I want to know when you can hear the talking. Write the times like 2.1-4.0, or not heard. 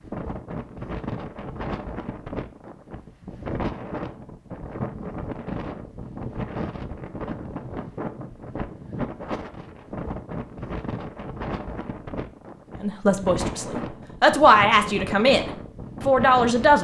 12.8-16.7.